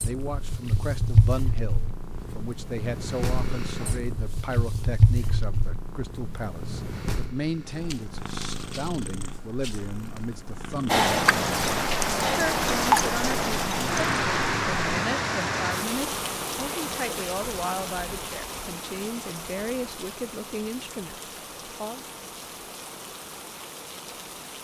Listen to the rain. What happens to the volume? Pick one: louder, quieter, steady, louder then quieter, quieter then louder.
quieter.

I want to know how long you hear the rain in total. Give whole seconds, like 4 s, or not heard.
14 s.